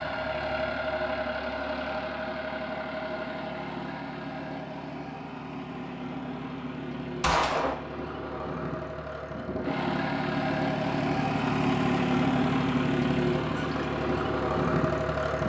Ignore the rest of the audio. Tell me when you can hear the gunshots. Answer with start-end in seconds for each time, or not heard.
7.2-7.8.